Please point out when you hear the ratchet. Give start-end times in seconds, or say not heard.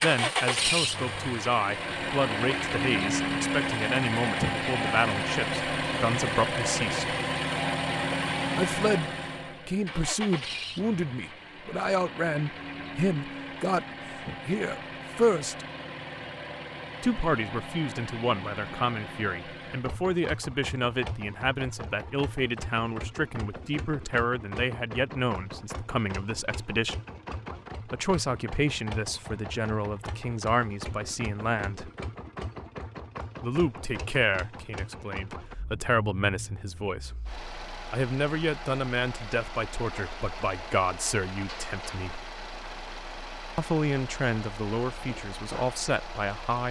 not heard.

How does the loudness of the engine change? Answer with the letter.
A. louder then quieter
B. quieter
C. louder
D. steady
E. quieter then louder
B.